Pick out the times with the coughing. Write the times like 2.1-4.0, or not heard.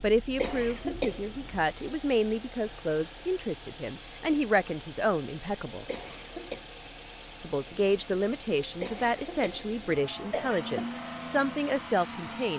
0.3-1.6, 5.8-6.7, 8.8-11.0.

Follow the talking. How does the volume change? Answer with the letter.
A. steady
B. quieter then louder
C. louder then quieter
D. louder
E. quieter
A.